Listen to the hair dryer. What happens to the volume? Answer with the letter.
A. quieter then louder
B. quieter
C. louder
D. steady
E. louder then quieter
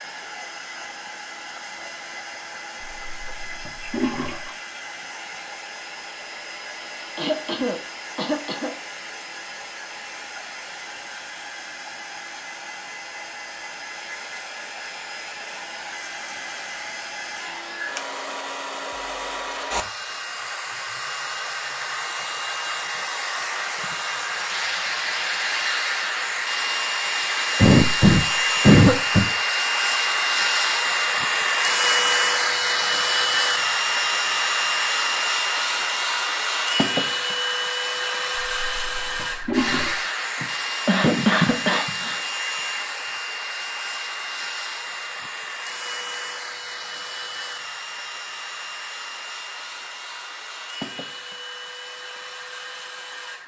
E.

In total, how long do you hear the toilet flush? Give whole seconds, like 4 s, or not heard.
3 s.